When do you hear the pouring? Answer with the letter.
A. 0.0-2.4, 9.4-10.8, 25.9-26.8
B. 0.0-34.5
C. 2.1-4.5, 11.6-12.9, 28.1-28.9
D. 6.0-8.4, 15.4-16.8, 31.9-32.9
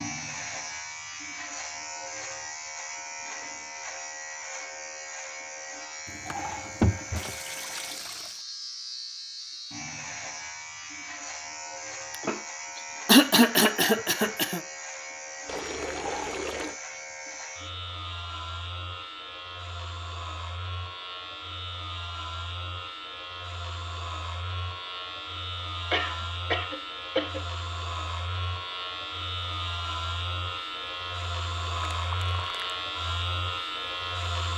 D.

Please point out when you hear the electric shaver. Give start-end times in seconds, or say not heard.
0.0-34.5.